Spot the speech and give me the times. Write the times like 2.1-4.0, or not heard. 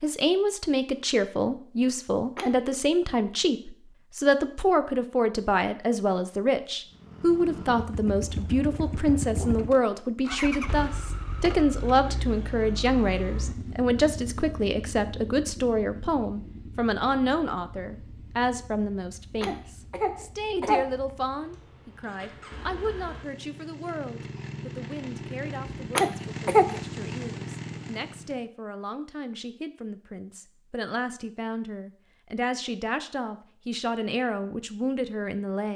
0.0-35.7.